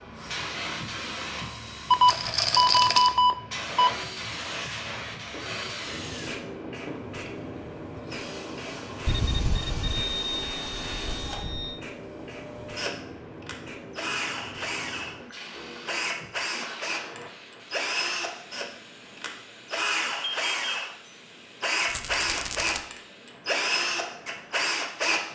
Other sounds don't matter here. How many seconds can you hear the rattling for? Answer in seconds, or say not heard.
2 s.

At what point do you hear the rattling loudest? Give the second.
3 s.